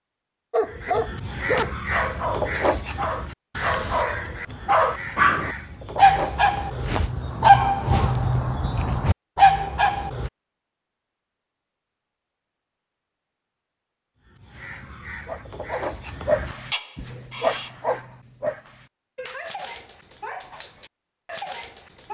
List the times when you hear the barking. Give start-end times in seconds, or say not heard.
0.5-10.3, 14.6-22.0.